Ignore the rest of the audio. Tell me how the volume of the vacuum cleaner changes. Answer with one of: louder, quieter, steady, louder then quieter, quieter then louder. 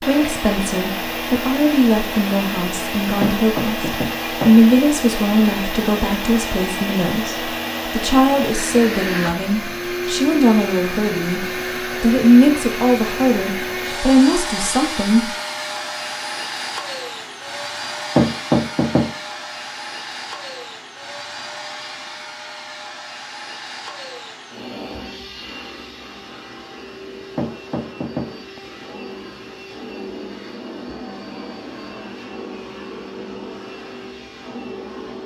quieter.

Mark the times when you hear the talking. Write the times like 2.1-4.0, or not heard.
0.0-15.3.